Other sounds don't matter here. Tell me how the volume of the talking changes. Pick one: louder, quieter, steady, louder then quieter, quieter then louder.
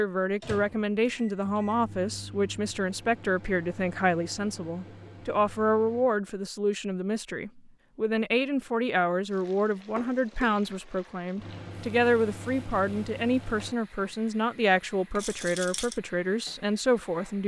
steady.